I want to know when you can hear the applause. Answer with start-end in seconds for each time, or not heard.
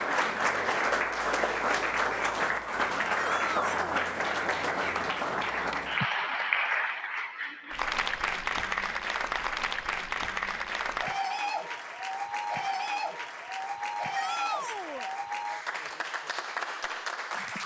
0.0-17.6.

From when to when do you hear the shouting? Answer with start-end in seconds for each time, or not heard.
3.1-4.0, 14.1-15.1.